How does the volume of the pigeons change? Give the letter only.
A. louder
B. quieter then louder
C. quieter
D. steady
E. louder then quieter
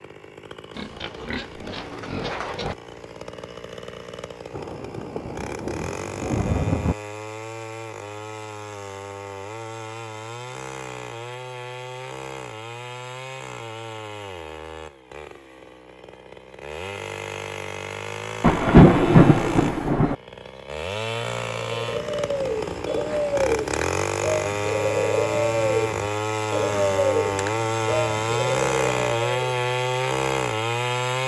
D.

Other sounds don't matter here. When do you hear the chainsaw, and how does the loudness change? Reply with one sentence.
You can hear the chainsaw from 0.0 to 31.2 s, getting louder.